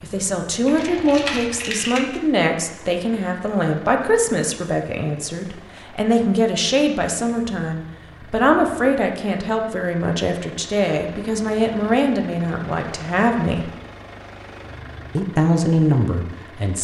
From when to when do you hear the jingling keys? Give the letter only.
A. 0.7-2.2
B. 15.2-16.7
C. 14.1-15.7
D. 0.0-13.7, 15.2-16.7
A.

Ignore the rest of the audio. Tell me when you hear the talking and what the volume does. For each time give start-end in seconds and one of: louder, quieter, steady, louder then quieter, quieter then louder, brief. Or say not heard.
0.0-13.7 steady
15.2-16.7 brief.